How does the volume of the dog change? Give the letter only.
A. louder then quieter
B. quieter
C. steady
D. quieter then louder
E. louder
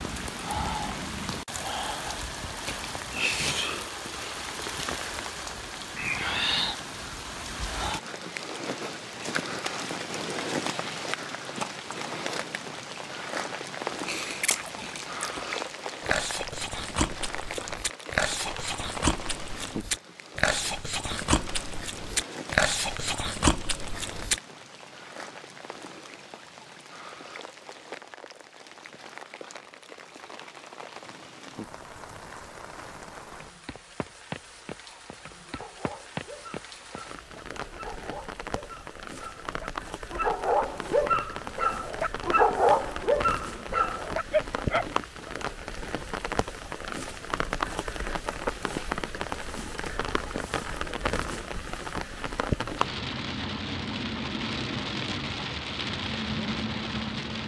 E.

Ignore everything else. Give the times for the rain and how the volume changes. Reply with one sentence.
The rain can be heard from 0.0 to 57.4 s, getting quieter then louder.